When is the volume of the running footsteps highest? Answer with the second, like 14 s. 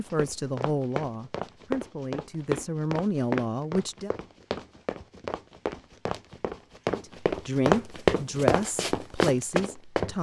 8 s.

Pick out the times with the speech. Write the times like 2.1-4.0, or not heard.
0.0-4.1, 6.9-10.1.